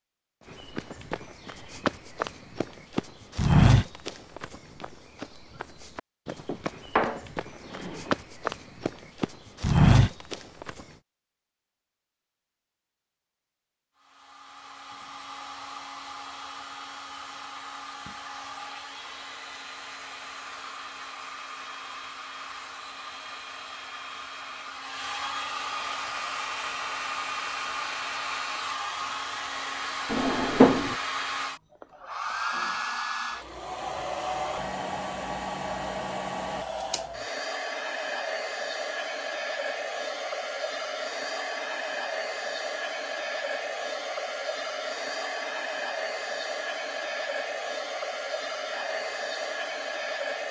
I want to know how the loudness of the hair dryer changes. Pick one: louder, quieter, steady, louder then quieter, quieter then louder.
louder.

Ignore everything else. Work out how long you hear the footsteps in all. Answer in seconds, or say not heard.
10 s.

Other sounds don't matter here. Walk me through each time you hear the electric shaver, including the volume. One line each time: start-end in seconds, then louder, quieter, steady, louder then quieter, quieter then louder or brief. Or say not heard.
not heard.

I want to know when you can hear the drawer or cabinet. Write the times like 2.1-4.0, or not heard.
6.5-8.2, 30.1-30.9.